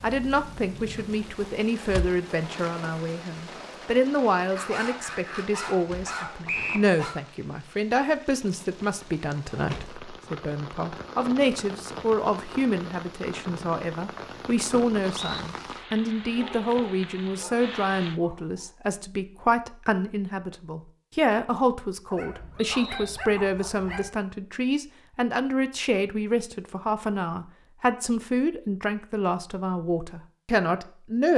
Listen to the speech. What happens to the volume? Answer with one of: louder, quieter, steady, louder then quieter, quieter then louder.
steady.